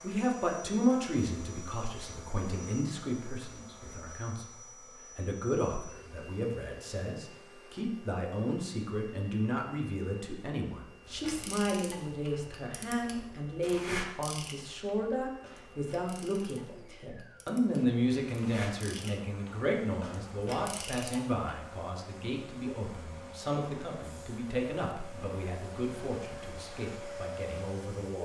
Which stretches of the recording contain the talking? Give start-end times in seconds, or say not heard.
0.0-4.5, 5.2-28.2.